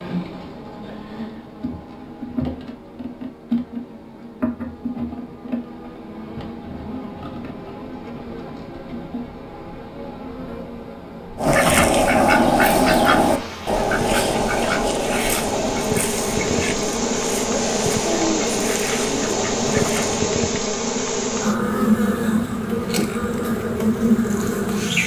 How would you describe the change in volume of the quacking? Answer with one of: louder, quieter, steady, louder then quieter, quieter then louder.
quieter.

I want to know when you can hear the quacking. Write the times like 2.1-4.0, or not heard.
11.3-20.2.